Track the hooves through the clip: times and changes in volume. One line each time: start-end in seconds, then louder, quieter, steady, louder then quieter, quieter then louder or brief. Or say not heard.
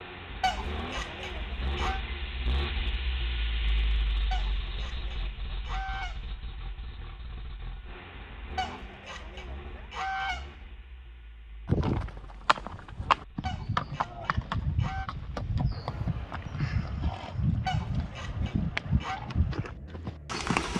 11.7-20.7 steady.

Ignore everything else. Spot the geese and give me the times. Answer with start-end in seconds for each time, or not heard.
0.4-2.0, 4.3-6.3, 8.6-10.6, 13.4-15.1, 17.6-19.2.